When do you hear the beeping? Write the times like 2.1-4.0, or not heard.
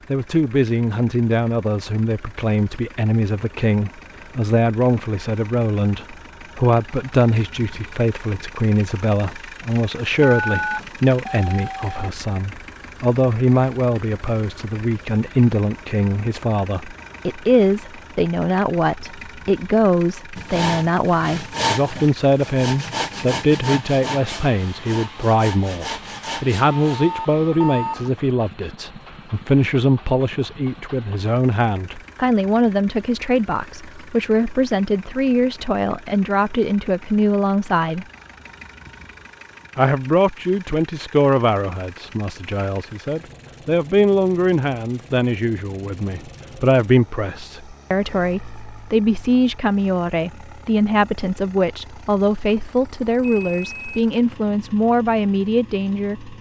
10.2-12.1, 26.7-28.1, 53.2-54.1.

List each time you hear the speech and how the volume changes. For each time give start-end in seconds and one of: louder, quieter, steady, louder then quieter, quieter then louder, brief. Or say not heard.
0.1-38.0 steady
39.8-56.3 steady.